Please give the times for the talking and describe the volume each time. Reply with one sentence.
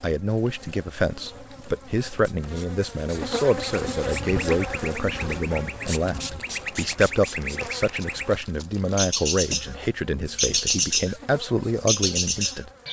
The talking can be heard from 0.0 to 12.7 s, at a steady volume.